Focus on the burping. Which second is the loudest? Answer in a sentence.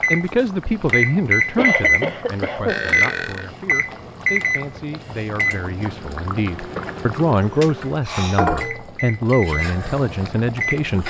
The volume of the burping peaks at 3 seconds.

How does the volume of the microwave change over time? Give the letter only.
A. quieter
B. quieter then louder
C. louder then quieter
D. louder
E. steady
B.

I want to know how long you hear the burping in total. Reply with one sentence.
The burping can be heard for 2 seconds in total.